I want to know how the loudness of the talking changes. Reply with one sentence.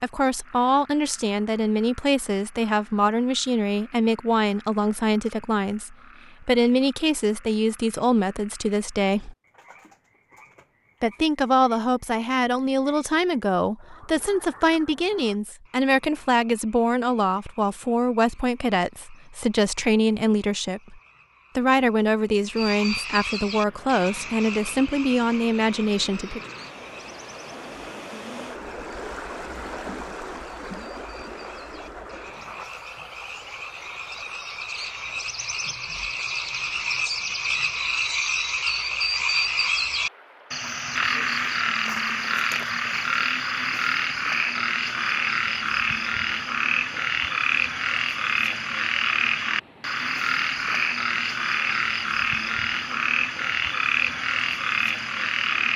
The loudness of the talking stays about the same.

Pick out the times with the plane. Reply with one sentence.
You can't hear the plane here.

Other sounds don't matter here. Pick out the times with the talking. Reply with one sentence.
You can hear the talking from 0.0 to 9.3 s and from 11.0 to 26.4 s.